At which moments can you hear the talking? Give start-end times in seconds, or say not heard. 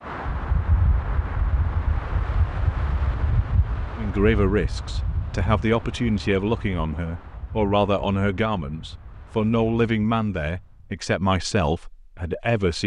4.0-12.8.